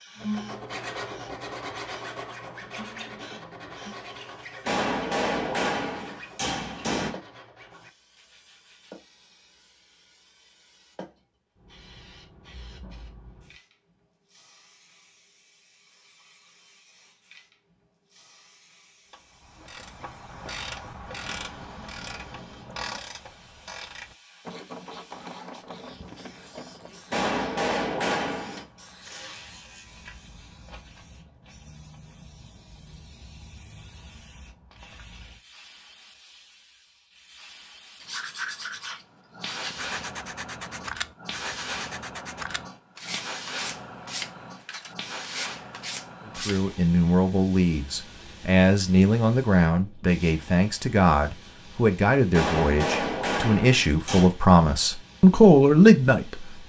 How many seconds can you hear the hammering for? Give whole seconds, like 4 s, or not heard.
6 s.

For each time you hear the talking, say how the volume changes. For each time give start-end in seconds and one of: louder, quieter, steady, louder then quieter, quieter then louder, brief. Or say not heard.
46.2-56.5 louder.